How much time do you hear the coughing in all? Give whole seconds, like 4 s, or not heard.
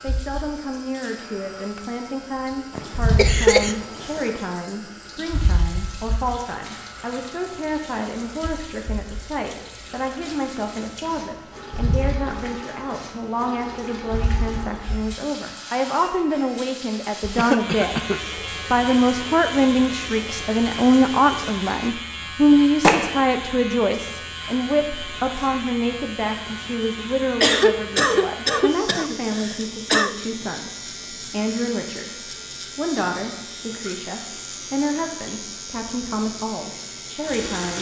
5 s.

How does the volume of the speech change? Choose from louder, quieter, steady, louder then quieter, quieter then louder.
louder then quieter.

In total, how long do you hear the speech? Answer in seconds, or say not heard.
37 s.